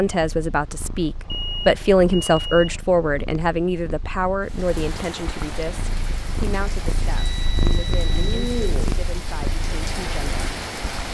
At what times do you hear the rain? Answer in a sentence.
The rain can be heard from 4.5 to 11.0 s.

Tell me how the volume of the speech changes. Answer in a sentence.
The loudness of the speech goes down.